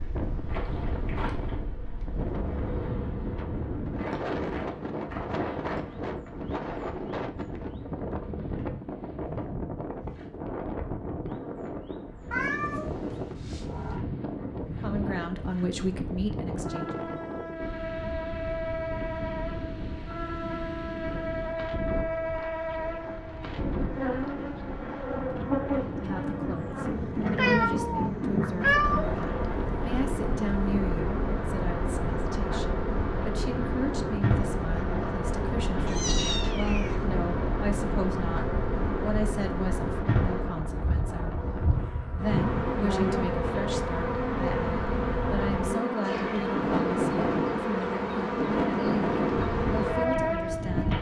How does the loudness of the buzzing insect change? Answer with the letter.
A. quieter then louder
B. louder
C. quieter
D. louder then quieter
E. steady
B.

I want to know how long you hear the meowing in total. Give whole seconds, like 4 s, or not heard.
5 s.